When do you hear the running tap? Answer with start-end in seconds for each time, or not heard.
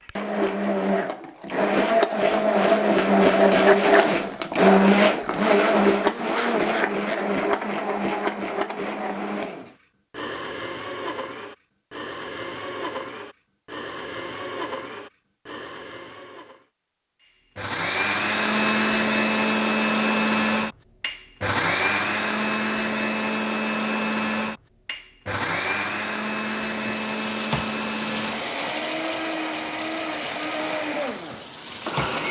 26.4-32.2.